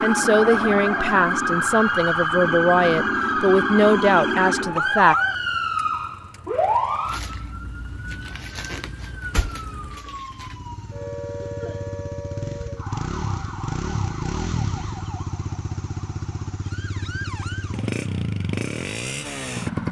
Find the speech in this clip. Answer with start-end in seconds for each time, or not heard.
0.0-5.2.